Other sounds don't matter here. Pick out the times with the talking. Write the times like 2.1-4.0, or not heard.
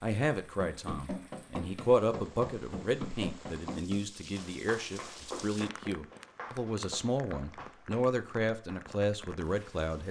0.0-10.0.